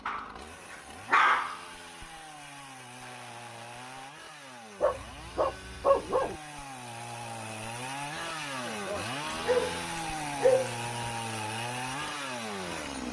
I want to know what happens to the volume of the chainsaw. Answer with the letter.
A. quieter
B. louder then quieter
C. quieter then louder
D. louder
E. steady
D.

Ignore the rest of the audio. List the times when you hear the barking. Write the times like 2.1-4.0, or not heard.
0.1-1.6, 4.8-6.3, 9.3-11.1.